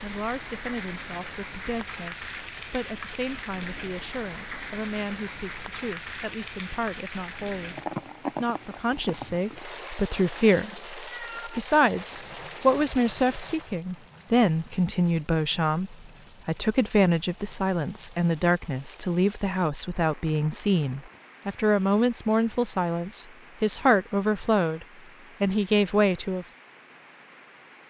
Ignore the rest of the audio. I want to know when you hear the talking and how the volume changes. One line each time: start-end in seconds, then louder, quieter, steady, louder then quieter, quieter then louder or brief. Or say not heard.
0.0-7.8 steady
8.3-26.4 steady.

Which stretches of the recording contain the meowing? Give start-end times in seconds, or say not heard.
11.0-11.6.